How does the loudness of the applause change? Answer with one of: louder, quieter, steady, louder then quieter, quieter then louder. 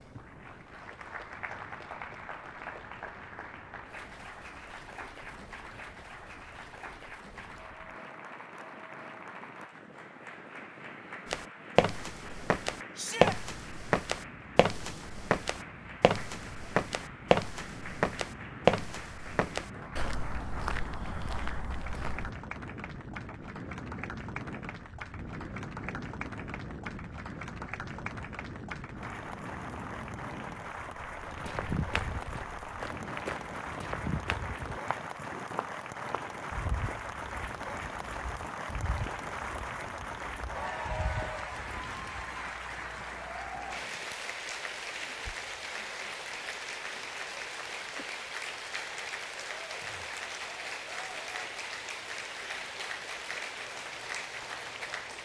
louder.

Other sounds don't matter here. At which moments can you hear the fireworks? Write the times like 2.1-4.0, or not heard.
not heard.